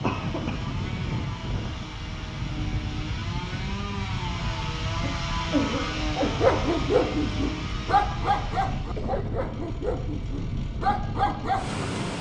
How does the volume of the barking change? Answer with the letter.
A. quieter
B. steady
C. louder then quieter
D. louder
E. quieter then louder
E.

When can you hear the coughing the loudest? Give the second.
6 s.